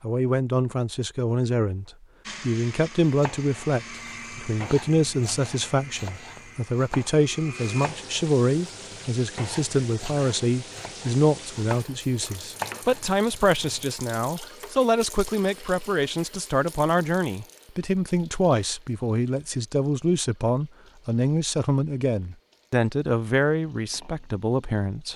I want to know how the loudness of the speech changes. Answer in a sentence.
The loudness of the speech stays about the same.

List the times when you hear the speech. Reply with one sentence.
You can hear the speech from 0.0 to 25.1 s.